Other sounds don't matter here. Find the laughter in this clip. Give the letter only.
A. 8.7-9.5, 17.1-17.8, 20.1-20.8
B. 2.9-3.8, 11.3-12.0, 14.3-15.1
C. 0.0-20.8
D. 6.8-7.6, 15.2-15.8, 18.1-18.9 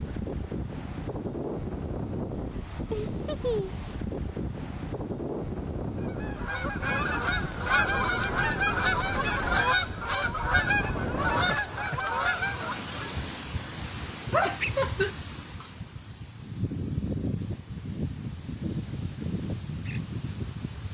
B.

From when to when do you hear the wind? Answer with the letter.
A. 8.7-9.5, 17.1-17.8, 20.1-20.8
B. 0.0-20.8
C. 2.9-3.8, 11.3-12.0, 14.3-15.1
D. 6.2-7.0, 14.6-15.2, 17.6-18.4
B.